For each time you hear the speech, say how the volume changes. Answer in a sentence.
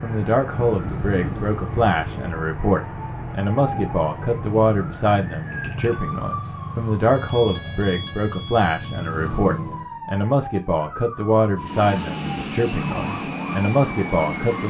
You can hear the speech from 0.0 to 14.6 s, at a steady volume.